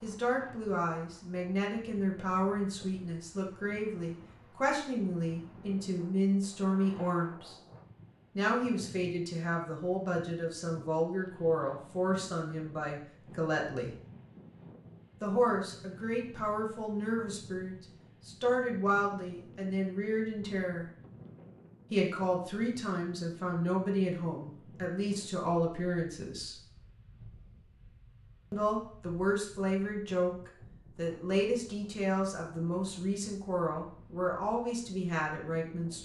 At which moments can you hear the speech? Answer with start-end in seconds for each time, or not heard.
0.0-7.5, 8.3-13.9, 15.2-20.9, 21.9-26.6, 28.5-35.9.